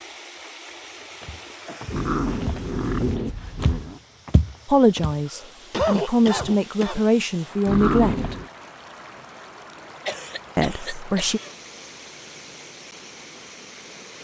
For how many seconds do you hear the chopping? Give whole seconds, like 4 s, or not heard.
not heard.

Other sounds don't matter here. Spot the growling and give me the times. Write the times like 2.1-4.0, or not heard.
1.9-4.0, 7.7-8.5.